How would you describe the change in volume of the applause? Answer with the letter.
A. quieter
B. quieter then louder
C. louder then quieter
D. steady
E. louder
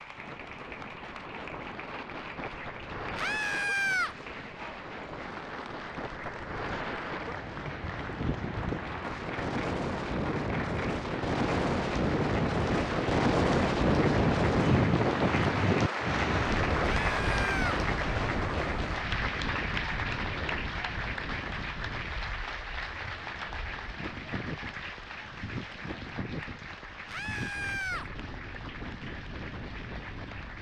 C.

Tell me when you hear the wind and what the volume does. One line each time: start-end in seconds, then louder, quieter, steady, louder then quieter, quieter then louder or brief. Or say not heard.
0.0-30.5 louder then quieter.